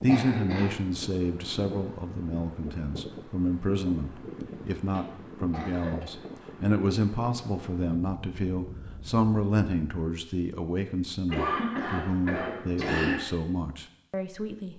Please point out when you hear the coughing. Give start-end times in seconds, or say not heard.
0.1-0.8, 4.9-6.2, 11.2-13.2.